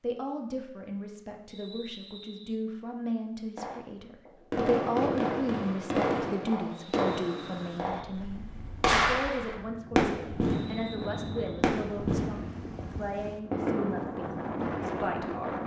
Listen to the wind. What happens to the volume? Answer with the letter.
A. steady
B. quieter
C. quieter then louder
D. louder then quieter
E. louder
E.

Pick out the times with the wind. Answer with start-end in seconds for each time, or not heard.
7.0-15.6.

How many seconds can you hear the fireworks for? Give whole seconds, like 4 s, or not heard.
11 s.